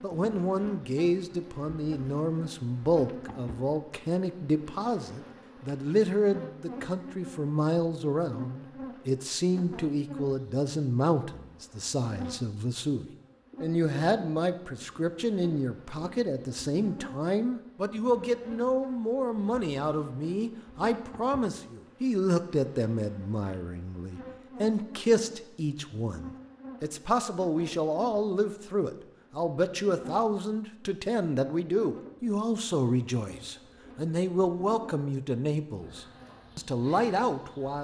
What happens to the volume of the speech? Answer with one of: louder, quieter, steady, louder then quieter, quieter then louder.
steady.